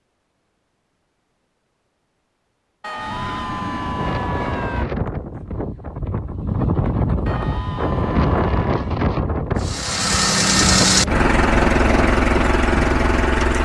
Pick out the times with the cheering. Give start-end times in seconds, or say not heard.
2.8-4.8, 7.2-8.8.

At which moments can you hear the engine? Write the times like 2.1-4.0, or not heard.
9.6-13.6.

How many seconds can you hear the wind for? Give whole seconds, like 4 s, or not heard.
11 s.